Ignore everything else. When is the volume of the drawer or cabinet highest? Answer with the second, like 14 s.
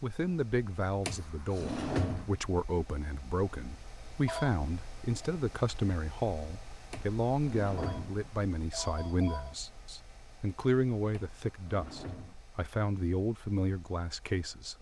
2 s.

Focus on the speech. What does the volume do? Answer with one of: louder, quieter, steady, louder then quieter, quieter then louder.
steady.